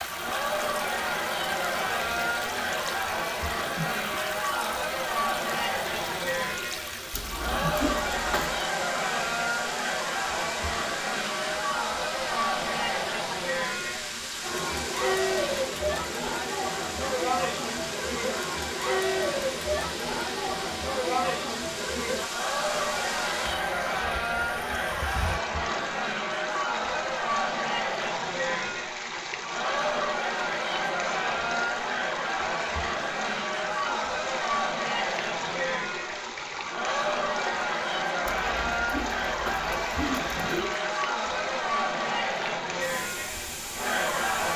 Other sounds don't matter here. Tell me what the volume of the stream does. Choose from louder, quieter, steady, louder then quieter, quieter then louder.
steady.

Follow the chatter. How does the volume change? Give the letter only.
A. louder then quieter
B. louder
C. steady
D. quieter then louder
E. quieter
C.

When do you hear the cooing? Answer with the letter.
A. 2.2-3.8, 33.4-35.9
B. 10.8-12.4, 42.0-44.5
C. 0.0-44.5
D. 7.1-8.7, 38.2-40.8
D.